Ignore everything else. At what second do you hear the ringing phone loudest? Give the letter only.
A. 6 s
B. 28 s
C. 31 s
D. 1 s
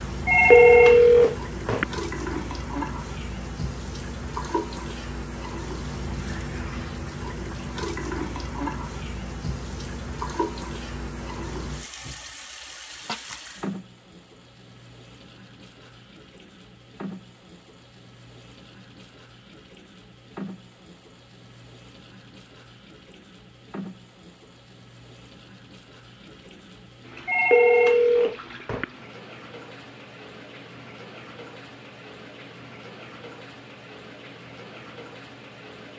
D.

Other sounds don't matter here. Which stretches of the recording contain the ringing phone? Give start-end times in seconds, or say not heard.
0.2-1.9, 27.2-28.9.